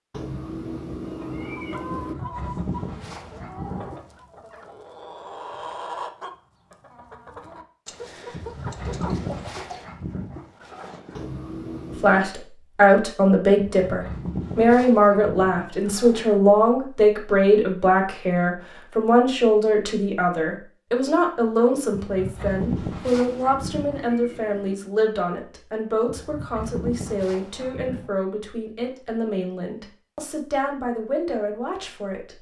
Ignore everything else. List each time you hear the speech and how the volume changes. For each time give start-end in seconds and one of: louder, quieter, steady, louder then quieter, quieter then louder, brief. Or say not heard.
12.0-32.3 quieter.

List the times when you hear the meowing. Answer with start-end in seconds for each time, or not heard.
0.1-2.1, 11.1-12.3, 22.8-24.8.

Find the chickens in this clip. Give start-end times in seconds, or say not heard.
1.3-9.8.